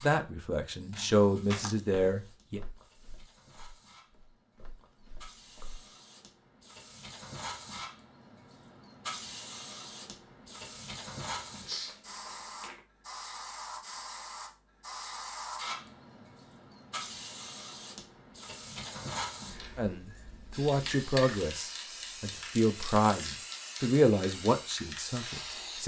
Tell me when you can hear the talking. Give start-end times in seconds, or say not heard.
0.0-2.6, 19.8-25.8.